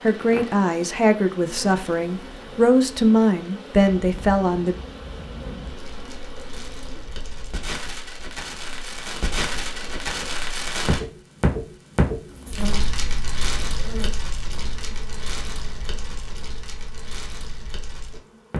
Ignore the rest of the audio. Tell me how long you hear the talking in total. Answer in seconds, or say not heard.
5 s.